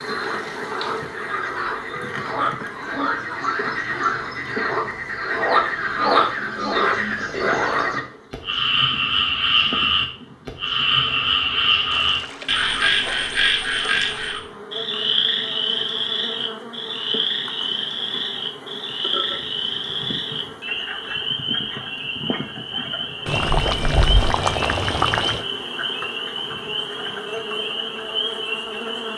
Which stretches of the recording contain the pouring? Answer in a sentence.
The pouring can be heard from 0.2 to 1.2 s, from 11.9 to 14.3 s and from 23.2 to 25.4 s.